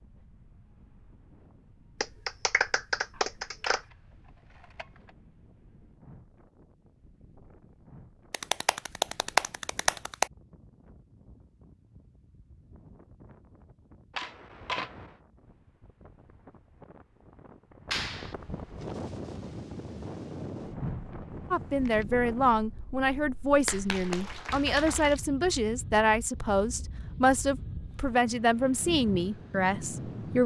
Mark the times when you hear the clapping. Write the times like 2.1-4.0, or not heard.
2.0-3.8, 8.3-10.3, 17.9-18.4, 23.6-25.2.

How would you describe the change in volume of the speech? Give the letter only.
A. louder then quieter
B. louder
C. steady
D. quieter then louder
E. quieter
C.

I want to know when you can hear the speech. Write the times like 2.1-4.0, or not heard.
21.5-30.4.